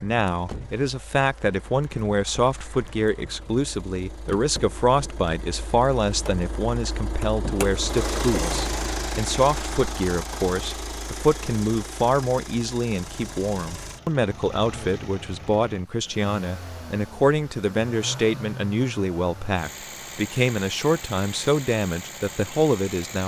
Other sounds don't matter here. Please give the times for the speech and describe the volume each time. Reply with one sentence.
The speech can be heard from 0.0 to 23.2 s, at a steady volume.